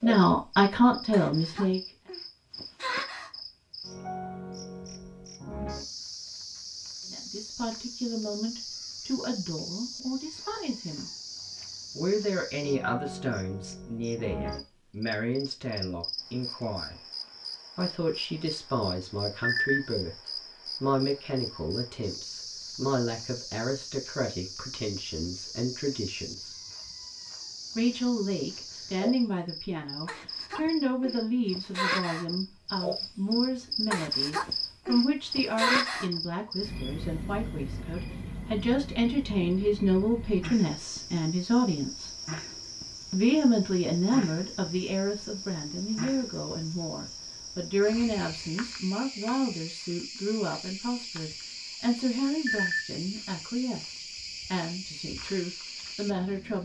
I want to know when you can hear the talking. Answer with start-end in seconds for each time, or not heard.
0.0-1.8, 7.1-11.1, 11.9-17.0, 17.8-26.6, 27.8-42.1, 43.1-56.6.